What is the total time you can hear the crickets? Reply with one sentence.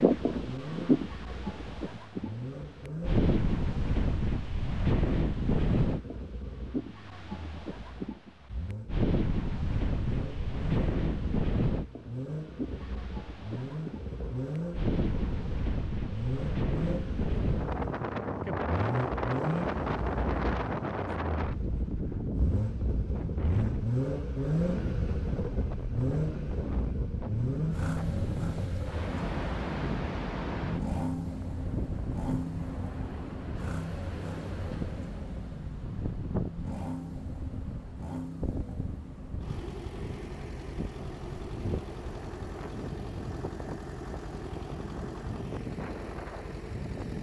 The crickets can't be heard in this clip.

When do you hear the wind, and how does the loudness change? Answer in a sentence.
You can hear the wind from 0.0 to 47.1 s, getting quieter.